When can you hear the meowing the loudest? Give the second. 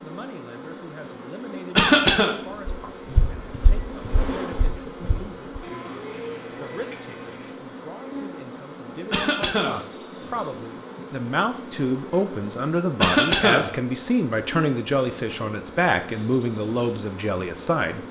6 s.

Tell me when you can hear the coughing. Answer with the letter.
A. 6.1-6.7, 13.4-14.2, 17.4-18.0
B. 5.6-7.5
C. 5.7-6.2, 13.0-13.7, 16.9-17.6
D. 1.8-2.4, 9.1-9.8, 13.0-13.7
D.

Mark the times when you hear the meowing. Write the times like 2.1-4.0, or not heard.
5.6-7.5.